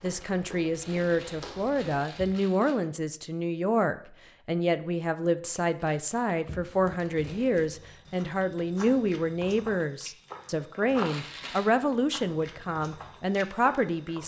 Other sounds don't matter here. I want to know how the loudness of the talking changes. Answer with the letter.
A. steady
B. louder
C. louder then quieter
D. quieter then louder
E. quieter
A.